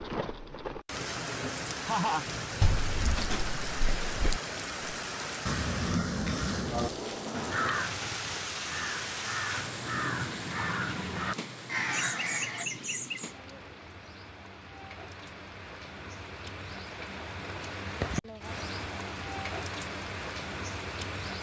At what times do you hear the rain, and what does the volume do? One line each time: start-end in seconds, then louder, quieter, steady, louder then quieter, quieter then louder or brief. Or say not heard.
0.0-21.3 quieter then louder.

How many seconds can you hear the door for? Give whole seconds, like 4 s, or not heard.
2 s.